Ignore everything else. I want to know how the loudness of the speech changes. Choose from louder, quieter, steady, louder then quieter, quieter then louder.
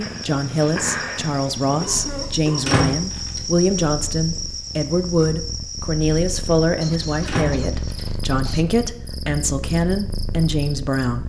steady.